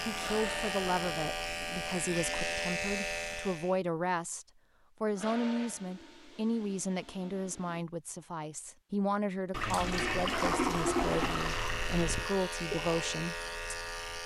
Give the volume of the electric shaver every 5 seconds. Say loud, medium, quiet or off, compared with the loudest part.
loud, off, loud.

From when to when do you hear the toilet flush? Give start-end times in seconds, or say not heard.
0.1-2.5, 5.1-7.8, 9.5-12.3.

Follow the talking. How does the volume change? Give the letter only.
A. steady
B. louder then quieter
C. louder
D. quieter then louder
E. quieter
A.